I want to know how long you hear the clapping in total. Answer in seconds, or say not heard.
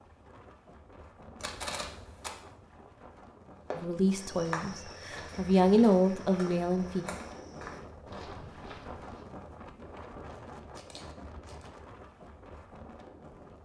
not heard.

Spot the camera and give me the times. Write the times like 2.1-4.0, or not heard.
1.4-2.3, 10.8-11.7.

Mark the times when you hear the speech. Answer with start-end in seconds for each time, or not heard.
3.8-7.0.